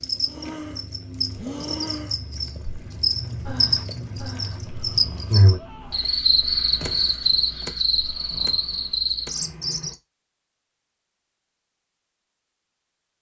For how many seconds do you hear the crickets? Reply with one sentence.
You can hear the crickets for 10 seconds altogether.